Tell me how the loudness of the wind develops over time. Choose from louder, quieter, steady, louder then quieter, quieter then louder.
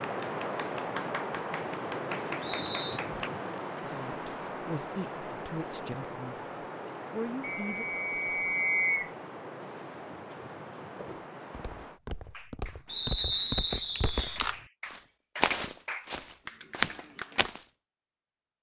quieter.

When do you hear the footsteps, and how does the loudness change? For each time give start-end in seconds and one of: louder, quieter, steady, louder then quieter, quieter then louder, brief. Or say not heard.
10.9-17.6 louder.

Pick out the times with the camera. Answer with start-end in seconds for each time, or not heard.
13.9-14.7.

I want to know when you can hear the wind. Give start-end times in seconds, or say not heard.
0.0-12.0.